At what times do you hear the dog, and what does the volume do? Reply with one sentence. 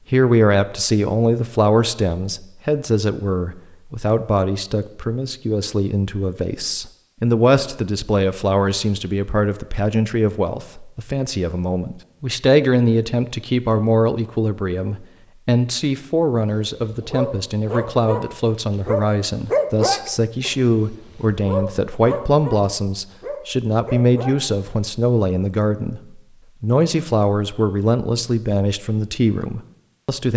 The dog can be heard from 16.7 to 24.4 s, getting louder then quieter.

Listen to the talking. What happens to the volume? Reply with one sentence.
The loudness of the talking stays about the same.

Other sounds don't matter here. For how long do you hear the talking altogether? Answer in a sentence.
The talking can be heard for 30 seconds in total.